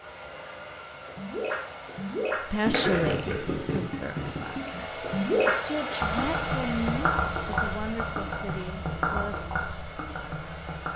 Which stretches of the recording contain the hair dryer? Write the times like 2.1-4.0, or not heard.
0.0-10.9.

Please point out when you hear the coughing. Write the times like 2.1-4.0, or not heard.
not heard.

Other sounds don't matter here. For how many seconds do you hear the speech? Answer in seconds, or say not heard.
7 s.